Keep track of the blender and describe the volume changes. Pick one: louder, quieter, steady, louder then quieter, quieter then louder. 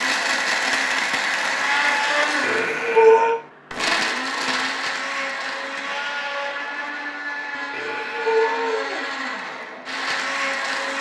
quieter.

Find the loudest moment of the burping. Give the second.
3 s.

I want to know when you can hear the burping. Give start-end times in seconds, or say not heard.
2.4-3.4, 7.7-9.1.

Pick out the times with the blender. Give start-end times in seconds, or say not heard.
0.0-10.9.